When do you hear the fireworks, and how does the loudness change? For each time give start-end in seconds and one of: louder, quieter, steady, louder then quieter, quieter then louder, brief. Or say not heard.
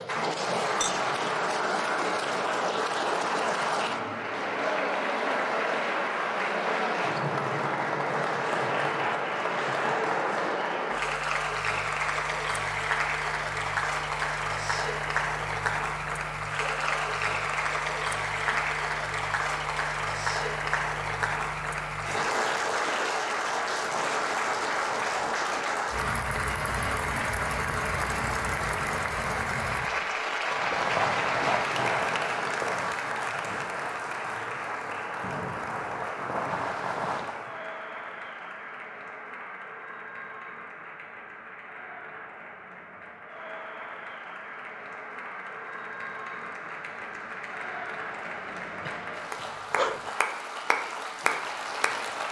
30.4-37.5 quieter then louder.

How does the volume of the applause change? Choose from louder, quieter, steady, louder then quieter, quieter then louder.
quieter.